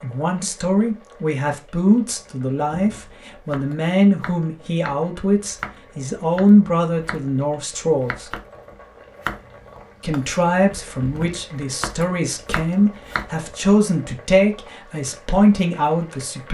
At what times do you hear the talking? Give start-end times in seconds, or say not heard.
0.0-8.3, 10.0-16.4.